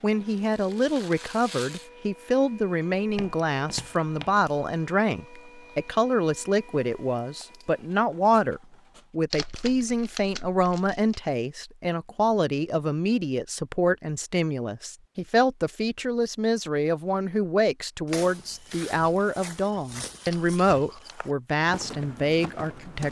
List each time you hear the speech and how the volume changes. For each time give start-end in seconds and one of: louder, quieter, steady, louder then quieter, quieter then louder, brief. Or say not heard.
0.0-23.0 steady.